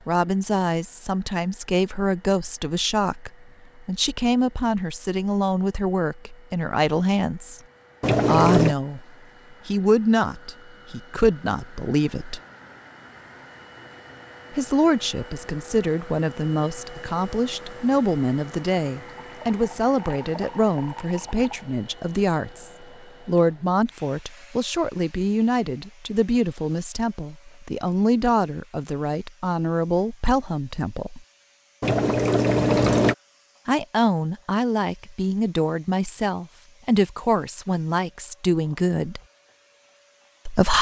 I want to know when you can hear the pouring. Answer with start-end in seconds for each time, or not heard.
8.0-8.8, 19.1-21.6, 31.8-33.1.